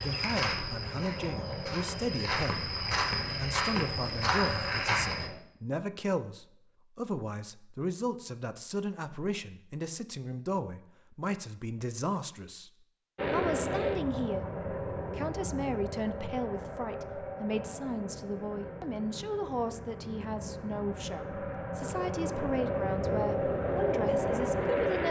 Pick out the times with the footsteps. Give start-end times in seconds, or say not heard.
0.0-5.3.